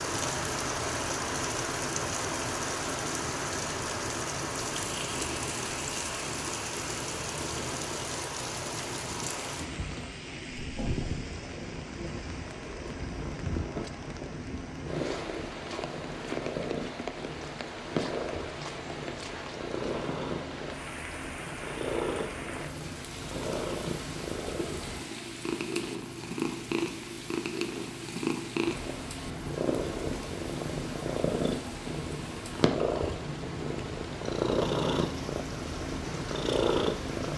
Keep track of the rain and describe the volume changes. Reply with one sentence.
The volume of the rain goes down.